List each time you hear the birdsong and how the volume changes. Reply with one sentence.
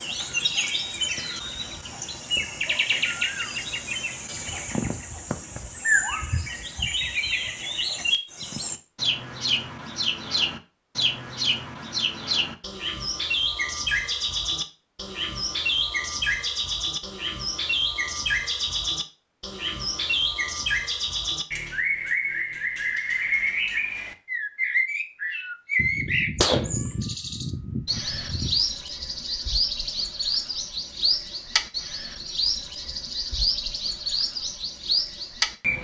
The birdsong can be heard from 0.0 to 35.7 s, at a steady volume.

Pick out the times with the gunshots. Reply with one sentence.
The gunshots can be heard from 25.8 to 28.6 s.